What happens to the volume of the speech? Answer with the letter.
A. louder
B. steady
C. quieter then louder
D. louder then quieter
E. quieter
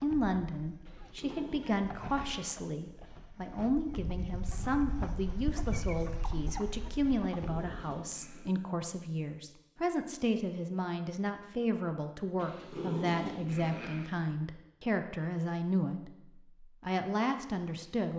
B.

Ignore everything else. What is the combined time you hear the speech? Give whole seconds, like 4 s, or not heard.
18 s.